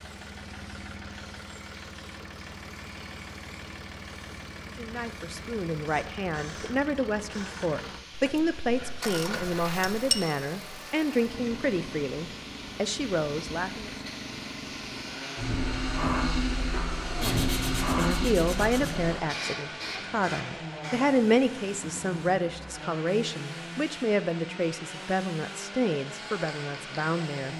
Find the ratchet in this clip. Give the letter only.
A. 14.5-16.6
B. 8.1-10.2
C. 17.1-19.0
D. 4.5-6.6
B.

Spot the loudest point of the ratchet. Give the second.
10 s.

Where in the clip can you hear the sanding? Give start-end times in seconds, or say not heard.
17.1-19.0.